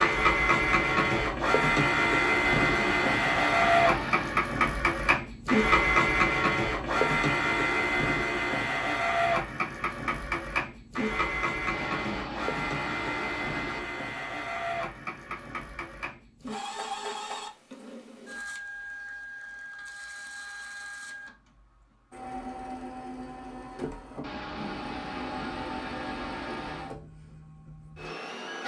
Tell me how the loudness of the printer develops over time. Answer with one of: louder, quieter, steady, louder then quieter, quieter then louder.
quieter.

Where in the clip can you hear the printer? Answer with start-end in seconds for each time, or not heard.
0.0-28.6.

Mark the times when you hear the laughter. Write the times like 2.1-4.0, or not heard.
2.7-4.4, 11.7-13.8, 24.2-26.9.